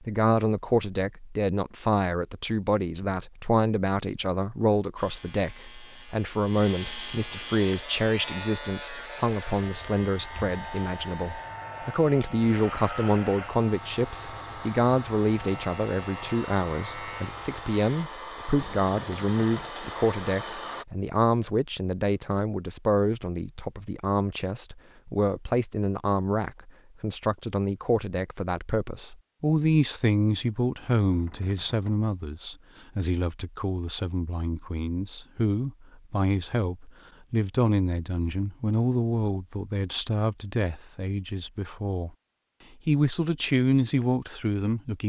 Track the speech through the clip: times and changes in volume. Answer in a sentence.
The speech can be heard from 0.0 to 42.1 s, at a steady volume; and briefly from 42.9 to 45.0 s.